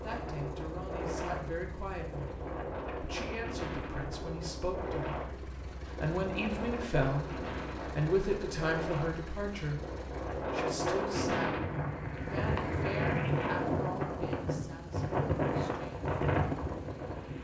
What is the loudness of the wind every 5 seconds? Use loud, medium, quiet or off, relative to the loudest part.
medium, medium, loud, loud.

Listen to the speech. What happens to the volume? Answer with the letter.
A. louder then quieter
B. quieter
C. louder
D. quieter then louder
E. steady
A.